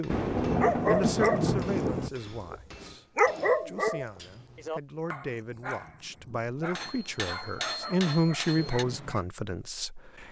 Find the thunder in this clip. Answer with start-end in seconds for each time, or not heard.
0.1-2.1.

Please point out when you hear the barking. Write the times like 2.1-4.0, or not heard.
0.6-9.2.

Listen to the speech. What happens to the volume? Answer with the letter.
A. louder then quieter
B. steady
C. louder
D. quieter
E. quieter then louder
E.